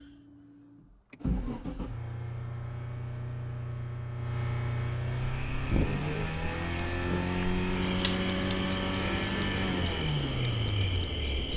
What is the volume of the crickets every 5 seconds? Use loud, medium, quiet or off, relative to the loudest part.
off, loud, loud.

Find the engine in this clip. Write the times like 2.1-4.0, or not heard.
0.0-11.5.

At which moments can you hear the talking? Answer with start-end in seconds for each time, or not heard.
not heard.